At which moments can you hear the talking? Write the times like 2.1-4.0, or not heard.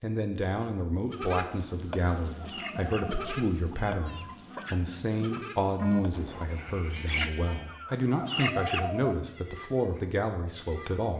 0.0-11.1.